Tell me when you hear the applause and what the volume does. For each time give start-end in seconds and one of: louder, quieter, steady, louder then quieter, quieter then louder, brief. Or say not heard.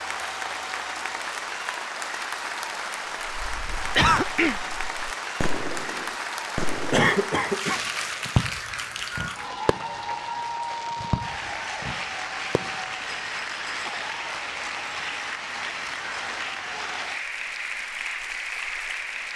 0.0-19.3 steady.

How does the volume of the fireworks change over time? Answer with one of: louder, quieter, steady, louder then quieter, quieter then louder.
louder then quieter.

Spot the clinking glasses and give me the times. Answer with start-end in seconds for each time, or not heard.
not heard.